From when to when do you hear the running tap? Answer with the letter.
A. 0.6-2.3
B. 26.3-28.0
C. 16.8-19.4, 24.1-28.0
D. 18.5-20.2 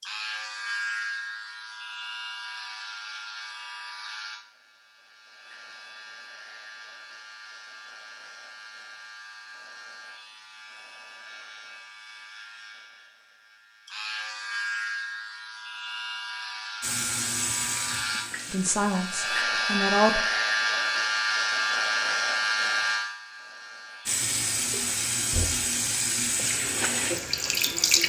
C.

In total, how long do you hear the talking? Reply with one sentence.
The talking can be heard for 2 seconds in total.